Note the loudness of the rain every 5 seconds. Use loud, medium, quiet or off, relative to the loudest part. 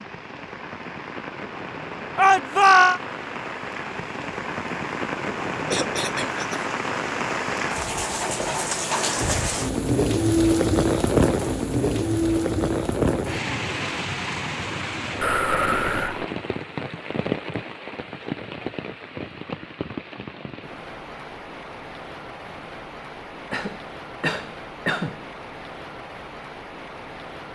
medium, loud, loud, medium, quiet, quiet.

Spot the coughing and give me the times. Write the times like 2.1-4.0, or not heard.
5.7-6.7, 15.2-16.2, 23.5-25.2.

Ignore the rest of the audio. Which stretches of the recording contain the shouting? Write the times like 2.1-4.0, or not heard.
2.1-3.0.